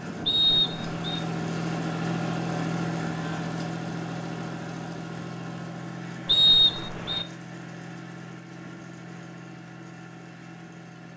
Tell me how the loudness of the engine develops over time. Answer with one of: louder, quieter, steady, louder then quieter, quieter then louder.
quieter.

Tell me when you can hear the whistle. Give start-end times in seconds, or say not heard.
0.2-1.2, 6.2-7.2.